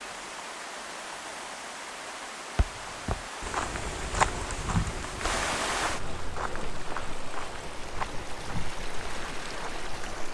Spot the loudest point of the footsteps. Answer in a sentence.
The loudest moment of the footsteps is at 4 seconds.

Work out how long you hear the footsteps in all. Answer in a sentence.
You can hear the footsteps for 8 seconds altogether.